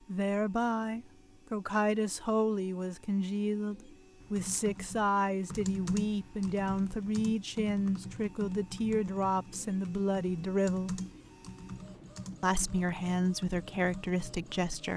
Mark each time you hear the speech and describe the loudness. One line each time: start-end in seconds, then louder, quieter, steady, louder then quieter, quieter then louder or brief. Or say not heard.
0.1-11.0 steady
12.4-14.9 brief.